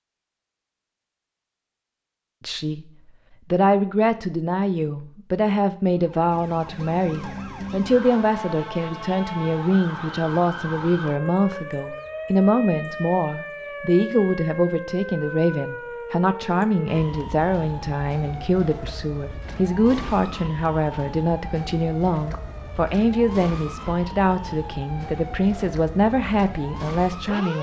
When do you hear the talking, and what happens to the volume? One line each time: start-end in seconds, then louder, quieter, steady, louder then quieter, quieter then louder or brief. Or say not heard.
2.4-2.9 brief
3.5-27.5 steady.